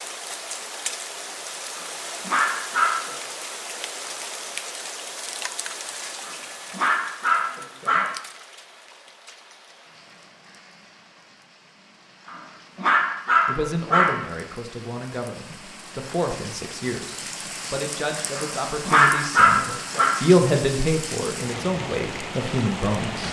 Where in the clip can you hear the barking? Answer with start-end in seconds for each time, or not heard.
1.7-3.1, 6.2-8.1, 12.2-14.1, 18.4-20.1.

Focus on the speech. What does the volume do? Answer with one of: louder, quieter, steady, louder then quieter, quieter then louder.
louder then quieter.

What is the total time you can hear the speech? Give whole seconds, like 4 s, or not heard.
10 s.